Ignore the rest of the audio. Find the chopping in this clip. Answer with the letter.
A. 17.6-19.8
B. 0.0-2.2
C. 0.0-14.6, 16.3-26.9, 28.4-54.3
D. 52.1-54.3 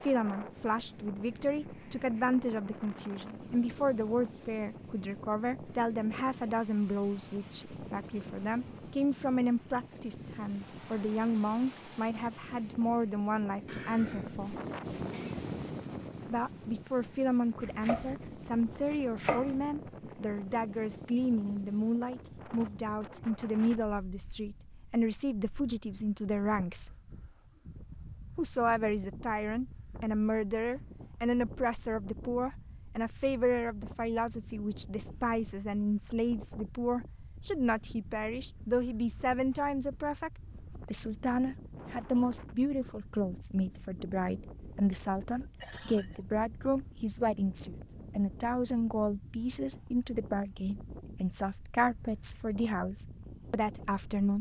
A.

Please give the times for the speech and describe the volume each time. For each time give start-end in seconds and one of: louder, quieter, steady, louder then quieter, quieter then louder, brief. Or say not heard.
0.0-14.6 steady
16.3-26.9 steady
28.4-54.3 steady.